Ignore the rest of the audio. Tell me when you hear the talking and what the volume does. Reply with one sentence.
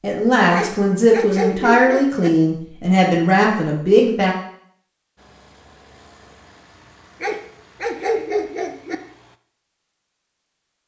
The talking can be heard from 0.0 to 4.3 s, at a steady volume.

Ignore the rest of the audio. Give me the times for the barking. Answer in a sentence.
The barking can be heard from 0.5 to 2.3 s and from 7.2 to 8.9 s.